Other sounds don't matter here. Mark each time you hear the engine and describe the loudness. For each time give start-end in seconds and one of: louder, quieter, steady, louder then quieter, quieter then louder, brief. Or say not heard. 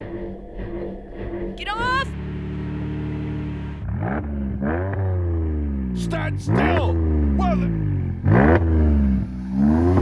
0.0-9.9 louder.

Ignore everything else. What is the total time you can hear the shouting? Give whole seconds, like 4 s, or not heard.
2 s.